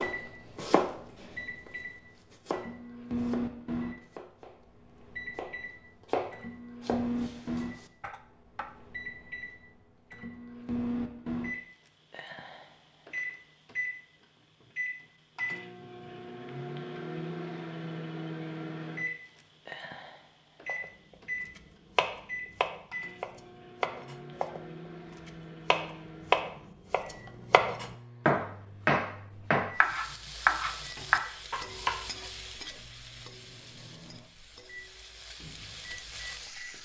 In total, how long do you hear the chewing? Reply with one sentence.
The chewing can't be heard in this clip.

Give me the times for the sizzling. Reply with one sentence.
The sizzling can be heard from 29.8 to 36.8 s.